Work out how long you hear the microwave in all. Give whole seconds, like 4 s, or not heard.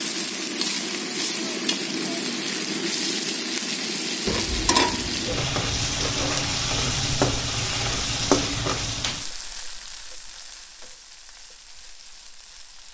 not heard.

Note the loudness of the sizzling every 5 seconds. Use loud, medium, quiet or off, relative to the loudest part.
loud, loud, quiet.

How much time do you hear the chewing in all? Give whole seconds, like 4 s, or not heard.
2 s.